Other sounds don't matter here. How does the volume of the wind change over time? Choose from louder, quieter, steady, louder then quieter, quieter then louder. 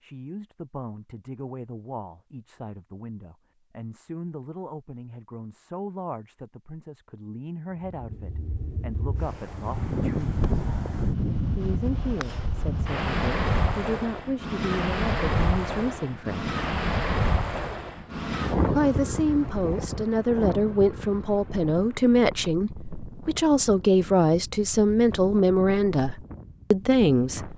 quieter.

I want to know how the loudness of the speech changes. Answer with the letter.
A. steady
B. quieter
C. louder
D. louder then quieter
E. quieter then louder
C.